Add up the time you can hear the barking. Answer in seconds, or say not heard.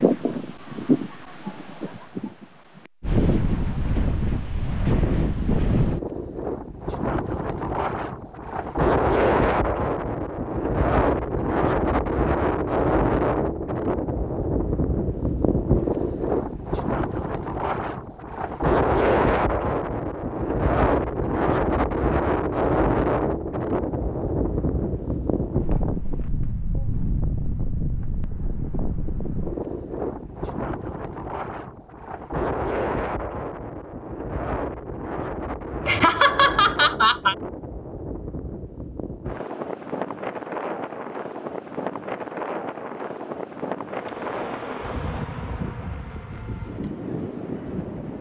not heard.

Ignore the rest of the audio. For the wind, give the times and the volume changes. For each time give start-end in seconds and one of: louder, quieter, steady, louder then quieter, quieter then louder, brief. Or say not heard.
0.0-48.1 quieter.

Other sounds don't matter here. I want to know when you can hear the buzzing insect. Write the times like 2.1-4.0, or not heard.
43.9-47.9.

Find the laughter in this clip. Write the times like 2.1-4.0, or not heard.
35.9-37.4.